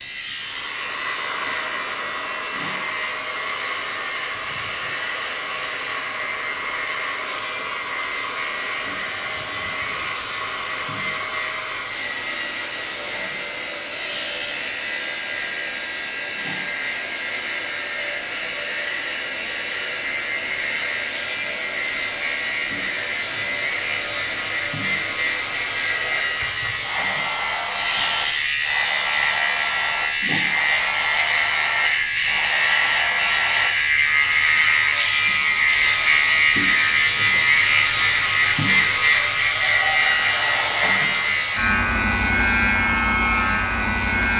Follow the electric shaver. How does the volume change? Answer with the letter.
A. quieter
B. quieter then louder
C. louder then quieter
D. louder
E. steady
D.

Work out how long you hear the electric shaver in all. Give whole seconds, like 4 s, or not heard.
44 s.